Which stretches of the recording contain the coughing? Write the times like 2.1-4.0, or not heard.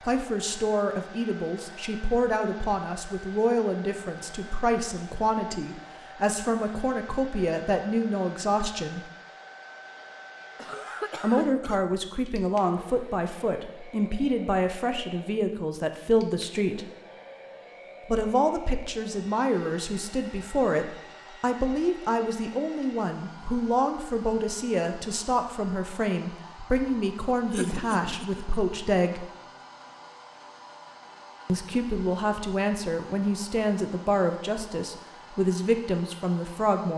10.6-11.8, 27.5-28.6.